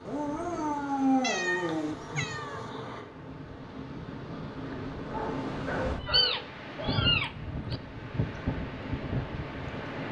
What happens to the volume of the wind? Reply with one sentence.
The loudness of the wind goes up.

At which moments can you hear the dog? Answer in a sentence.
The dog can be heard from 0.1 to 1.9 s and from 5.1 to 7.1 s.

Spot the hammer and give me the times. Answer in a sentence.
The hammer can't be heard in this clip.